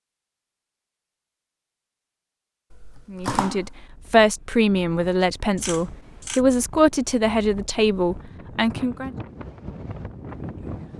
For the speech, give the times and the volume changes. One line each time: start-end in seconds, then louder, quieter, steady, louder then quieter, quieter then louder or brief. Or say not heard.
3.1-9.2 steady.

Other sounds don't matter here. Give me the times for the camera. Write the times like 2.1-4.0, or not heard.
2.7-3.7, 5.5-6.4.